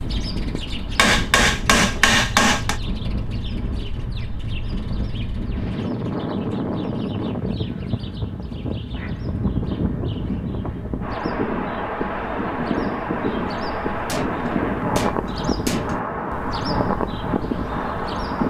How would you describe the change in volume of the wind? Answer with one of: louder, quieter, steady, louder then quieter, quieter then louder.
louder.